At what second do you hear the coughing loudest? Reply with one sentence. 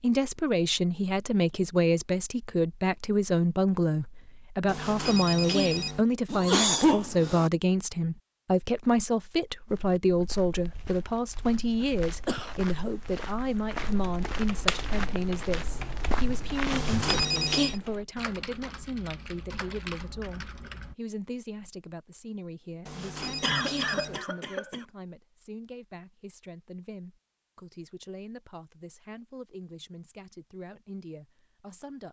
The loudest moment of the coughing is at 7 seconds.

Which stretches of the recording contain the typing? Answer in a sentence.
The typing can be heard from 13.8 to 20.9 s.